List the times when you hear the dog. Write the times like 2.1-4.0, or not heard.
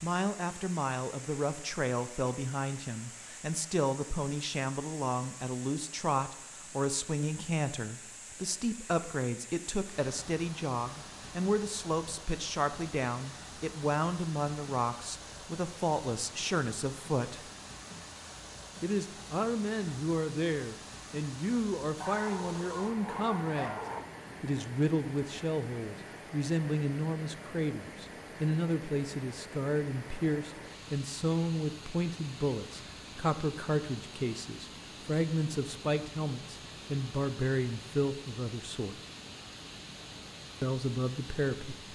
22.0-24.0.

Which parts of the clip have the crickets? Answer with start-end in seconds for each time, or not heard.
not heard.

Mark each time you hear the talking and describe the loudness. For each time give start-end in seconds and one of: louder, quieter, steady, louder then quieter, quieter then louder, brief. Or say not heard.
0.0-17.5 steady
18.8-23.8 steady
24.4-39.0 steady
40.6-41.8 brief.